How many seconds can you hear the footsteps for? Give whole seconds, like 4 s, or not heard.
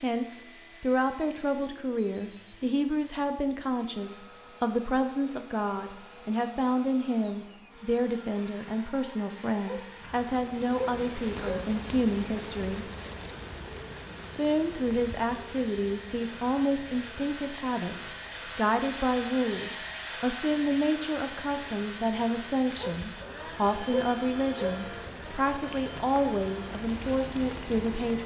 not heard.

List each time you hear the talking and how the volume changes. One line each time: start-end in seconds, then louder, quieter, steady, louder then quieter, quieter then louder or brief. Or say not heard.
0.0-12.9 steady
14.2-28.2 steady.